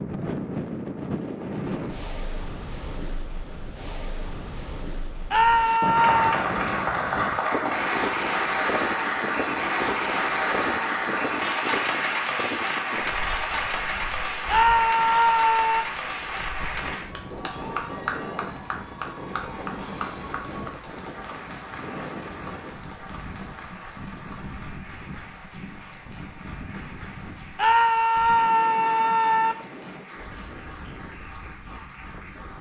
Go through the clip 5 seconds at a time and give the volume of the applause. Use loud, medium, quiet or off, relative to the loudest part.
off, loud, loud, medium, quiet, quiet, quiet.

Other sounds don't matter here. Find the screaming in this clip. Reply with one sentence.
You can hear the screaming from 5.3 to 6.5 s, from 14.4 to 15.8 s and from 27.6 to 29.6 s.